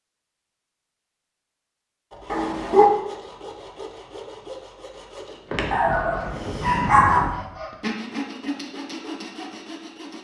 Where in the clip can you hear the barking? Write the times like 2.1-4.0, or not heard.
2.3-2.9, 5.7-7.3.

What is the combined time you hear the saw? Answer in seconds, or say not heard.
8 s.